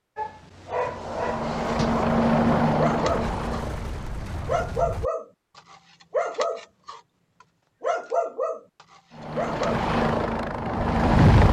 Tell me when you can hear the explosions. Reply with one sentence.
You can hear the explosions from 3.0 to 5.1 s.